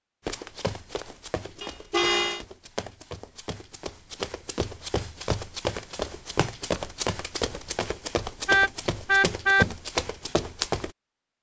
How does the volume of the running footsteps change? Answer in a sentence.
The volume of the running footsteps goes up.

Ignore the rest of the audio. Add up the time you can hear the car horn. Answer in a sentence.
The car horn can be heard for 2 seconds in total.